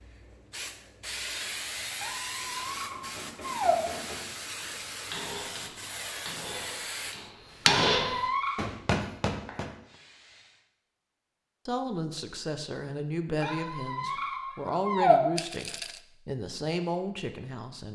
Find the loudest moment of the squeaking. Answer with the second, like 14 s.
15 s.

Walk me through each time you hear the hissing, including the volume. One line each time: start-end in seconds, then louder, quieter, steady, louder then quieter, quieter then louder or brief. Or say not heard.
0.0-10.7 quieter.